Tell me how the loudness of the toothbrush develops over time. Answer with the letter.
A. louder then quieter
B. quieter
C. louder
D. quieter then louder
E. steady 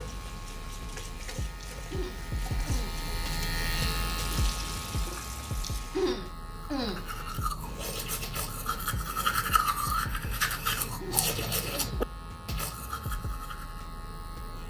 A.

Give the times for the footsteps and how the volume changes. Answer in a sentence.
You can't hear the footsteps here.